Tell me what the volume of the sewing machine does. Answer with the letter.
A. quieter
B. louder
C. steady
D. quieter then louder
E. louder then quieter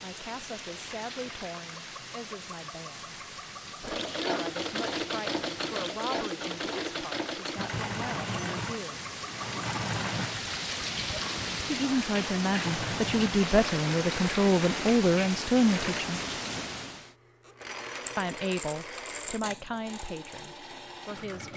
A.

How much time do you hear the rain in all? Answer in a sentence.
The rain can be heard for 17 seconds in total.